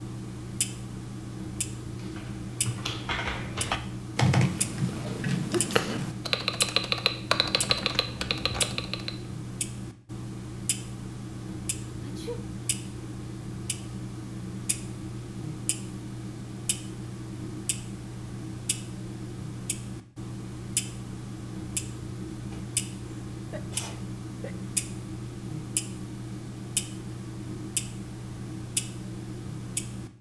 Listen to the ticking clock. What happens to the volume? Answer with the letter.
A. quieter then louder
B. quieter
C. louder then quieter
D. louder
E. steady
E.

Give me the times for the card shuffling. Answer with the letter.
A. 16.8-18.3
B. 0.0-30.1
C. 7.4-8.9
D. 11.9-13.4
C.